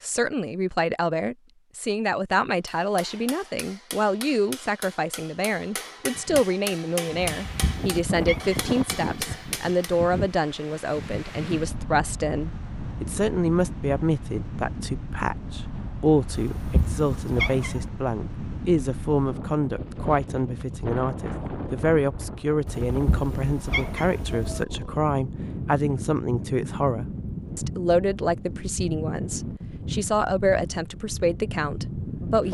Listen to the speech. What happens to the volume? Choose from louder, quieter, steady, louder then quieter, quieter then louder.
steady.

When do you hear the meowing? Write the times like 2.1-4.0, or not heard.
7.4-8.7, 16.3-17.8, 22.6-24.6.